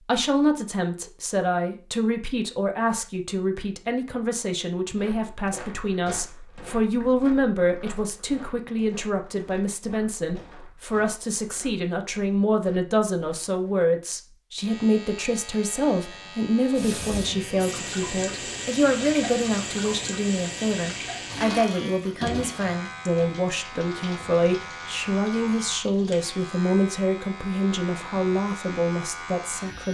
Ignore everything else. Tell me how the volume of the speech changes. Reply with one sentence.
The loudness of the speech stays about the same.